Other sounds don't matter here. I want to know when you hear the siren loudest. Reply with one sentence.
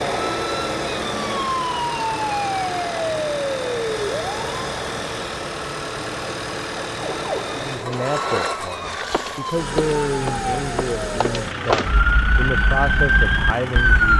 The volume of the siren peaks at 14 seconds.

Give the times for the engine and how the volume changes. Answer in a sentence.
The engine can be heard from 0.0 to 14.1 s, at a steady volume.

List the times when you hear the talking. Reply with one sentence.
You can hear the talking from 7.5 to 14.1 s.